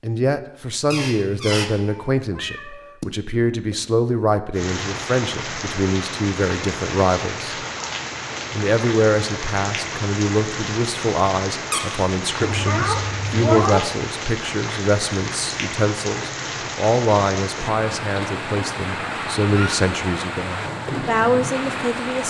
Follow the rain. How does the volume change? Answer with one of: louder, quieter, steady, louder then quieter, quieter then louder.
steady.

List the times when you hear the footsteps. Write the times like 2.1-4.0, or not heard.
not heard.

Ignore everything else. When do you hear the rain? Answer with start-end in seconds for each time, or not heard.
4.5-22.2.